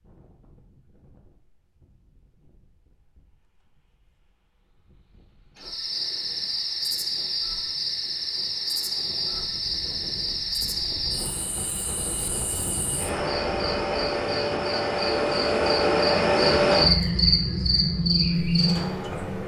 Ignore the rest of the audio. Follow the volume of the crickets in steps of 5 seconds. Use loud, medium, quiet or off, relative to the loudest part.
off, medium, medium, loud.